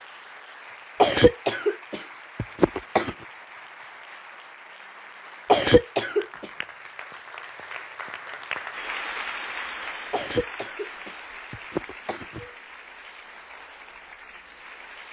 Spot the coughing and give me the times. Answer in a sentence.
The coughing can be heard from 1.0 to 3.1 s, from 5.5 to 6.5 s and from 10.1 to 12.5 s.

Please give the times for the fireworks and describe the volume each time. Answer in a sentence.
The fireworks can't be heard in this clip.